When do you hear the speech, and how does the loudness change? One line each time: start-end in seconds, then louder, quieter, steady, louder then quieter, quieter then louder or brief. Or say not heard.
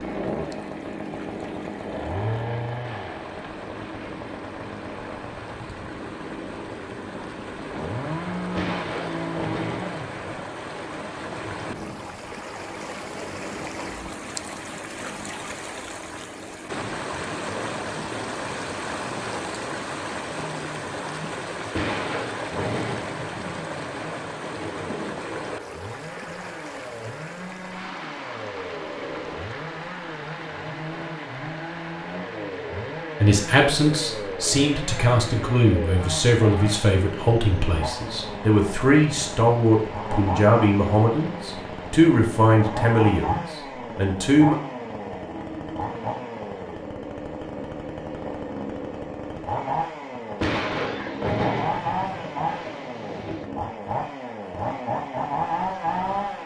33.2-44.5 steady.